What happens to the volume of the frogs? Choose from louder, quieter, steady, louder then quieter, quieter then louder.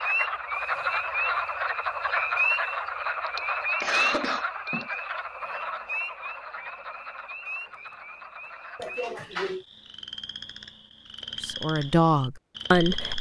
quieter.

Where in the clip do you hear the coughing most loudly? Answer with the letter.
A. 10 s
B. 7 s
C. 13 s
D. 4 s
D.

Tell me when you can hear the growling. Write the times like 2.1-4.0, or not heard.
not heard.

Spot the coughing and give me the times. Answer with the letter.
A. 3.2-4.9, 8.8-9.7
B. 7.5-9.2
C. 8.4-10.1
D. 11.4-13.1
A.